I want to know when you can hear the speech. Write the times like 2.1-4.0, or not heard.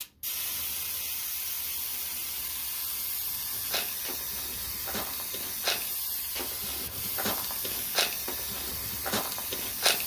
not heard.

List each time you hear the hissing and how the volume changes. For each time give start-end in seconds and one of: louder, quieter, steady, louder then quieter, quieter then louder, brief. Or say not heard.
0.0-10.0 steady.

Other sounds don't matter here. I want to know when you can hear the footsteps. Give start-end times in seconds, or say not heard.
3.5-10.0.